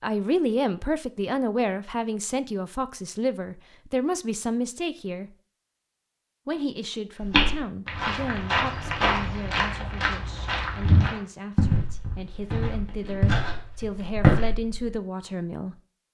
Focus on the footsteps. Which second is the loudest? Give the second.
14 s.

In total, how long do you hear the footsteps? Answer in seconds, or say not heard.
8 s.